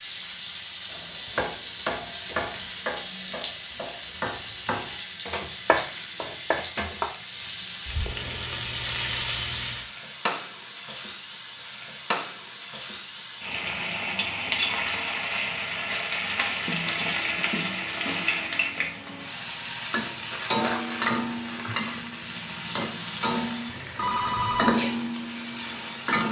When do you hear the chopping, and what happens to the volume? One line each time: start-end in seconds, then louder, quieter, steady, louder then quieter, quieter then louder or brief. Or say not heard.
0.9-7.1 quieter then louder.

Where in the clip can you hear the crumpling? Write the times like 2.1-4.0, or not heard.
20.3-22.1.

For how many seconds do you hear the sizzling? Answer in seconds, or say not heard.
26 s.